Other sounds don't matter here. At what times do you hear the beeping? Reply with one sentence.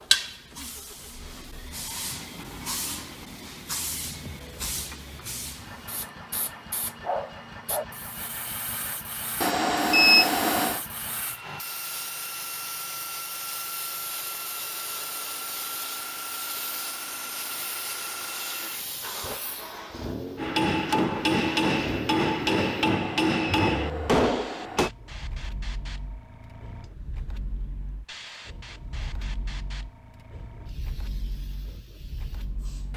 You can hear the beeping from 9.4 to 10.8 s and from 22.9 to 24.9 s.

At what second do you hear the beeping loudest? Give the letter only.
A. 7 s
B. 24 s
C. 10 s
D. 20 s
C.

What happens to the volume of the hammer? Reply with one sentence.
The volume of the hammer stays about the same.